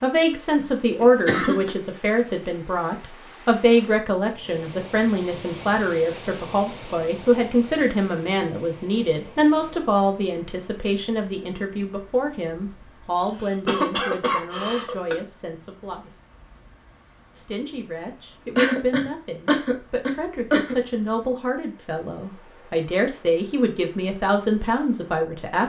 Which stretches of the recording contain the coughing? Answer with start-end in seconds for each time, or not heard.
0.6-1.7, 13.0-15.2, 18.6-20.8.